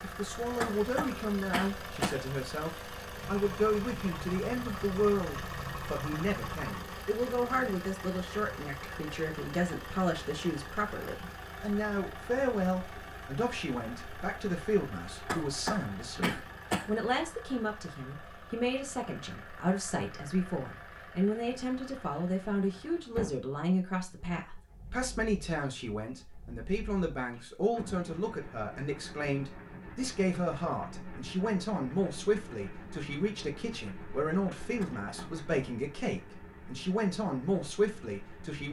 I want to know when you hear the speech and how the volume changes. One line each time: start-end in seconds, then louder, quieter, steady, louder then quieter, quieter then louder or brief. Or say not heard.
0.0-38.6 steady.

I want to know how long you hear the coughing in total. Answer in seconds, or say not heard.
4 s.